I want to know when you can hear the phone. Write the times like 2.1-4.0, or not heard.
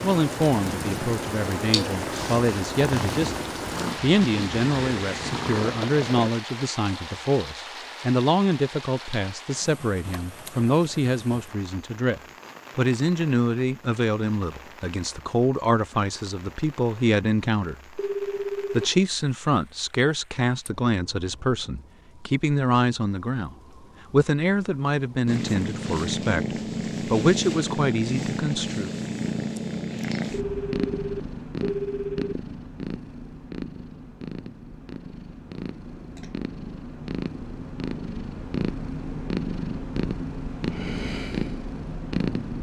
17.9-18.9, 30.3-32.4.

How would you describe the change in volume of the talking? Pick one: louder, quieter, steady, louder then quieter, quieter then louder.
steady.